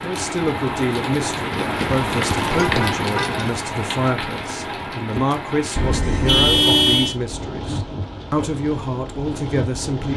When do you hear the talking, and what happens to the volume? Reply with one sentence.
You can hear the talking from 0.0 to 10.1 s, at a steady volume.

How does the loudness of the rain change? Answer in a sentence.
The volume of the rain goes down.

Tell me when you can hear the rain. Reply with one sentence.
You can hear the rain from 0.0 to 10.1 s.